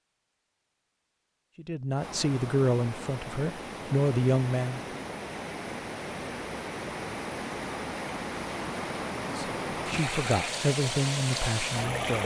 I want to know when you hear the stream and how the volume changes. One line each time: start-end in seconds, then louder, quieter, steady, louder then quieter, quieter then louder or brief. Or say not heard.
1.9-12.2 louder.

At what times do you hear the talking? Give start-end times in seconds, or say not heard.
1.6-5.0, 9.2-12.2.